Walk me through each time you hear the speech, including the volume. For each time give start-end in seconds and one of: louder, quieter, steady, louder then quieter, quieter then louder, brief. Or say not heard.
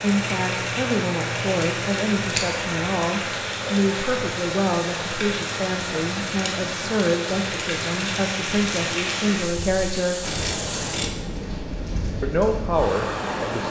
0.0-10.2 steady
12.2-13.6 brief.